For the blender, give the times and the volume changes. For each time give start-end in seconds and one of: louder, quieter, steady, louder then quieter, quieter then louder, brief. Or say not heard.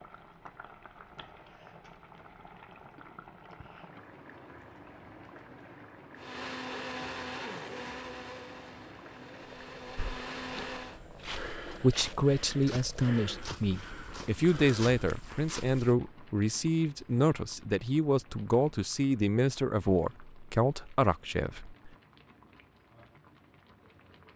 6.2-11.0 quieter then louder.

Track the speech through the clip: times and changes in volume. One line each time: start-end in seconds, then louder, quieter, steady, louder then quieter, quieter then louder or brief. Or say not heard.
11.7-21.9 steady.